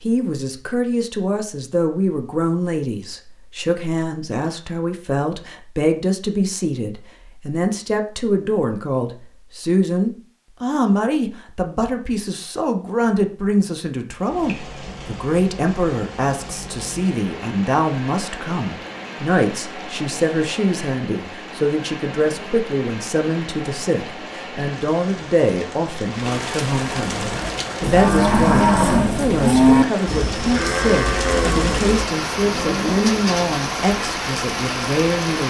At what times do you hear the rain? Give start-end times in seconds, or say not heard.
14.2-35.4.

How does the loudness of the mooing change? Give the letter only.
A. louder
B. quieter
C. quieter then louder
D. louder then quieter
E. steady
B.